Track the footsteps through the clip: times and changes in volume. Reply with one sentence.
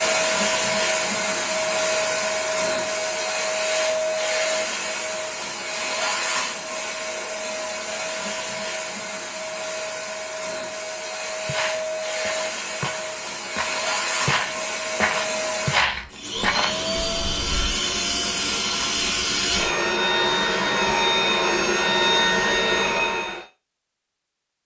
You can hear the footsteps from 11.3 to 17.8 s, getting louder.